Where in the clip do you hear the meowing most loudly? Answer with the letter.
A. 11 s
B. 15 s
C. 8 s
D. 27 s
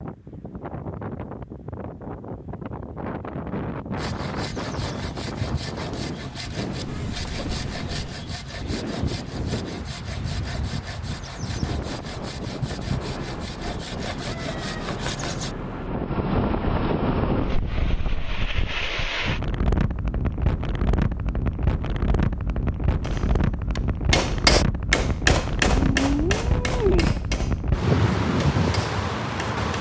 D.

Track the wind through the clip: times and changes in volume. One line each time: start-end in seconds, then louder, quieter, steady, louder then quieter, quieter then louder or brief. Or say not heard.
0.0-29.7 louder.